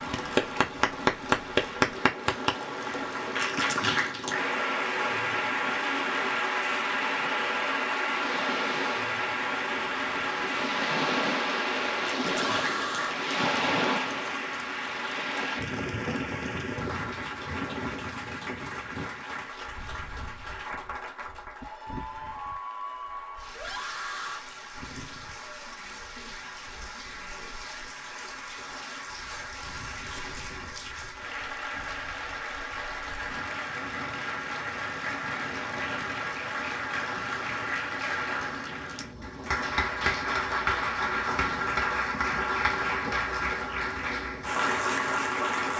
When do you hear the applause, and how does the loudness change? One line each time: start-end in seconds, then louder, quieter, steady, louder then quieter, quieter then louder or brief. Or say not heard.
0.0-45.7 quieter then louder.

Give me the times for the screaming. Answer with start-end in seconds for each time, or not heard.
12.2-13.2, 23.5-24.4.